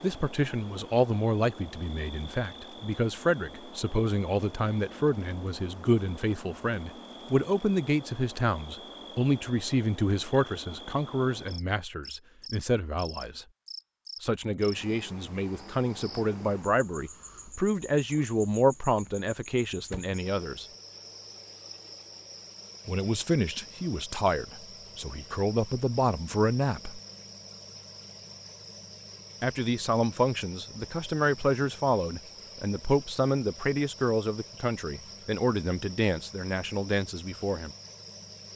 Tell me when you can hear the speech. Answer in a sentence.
You can hear the speech from 0.0 to 13.4 s, from 14.2 to 20.6 s, from 22.9 to 27.0 s and from 29.4 to 37.7 s.